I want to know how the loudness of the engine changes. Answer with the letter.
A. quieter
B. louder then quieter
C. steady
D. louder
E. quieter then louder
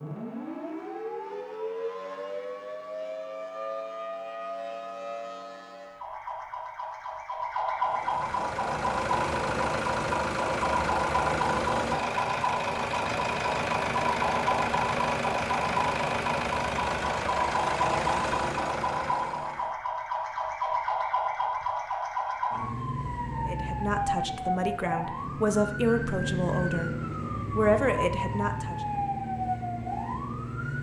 C.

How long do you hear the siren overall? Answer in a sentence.
You can hear the siren for 31 seconds altogether.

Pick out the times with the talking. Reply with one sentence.
The talking can be heard from 23.4 to 28.8 s.